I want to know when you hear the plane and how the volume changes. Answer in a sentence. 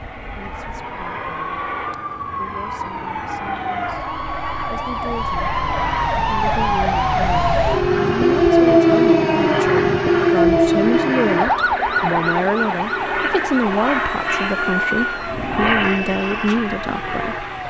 You can hear the plane from 0.0 to 17.6 s, getting louder.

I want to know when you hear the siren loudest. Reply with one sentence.
The loudest moment of the siren is at 9 seconds.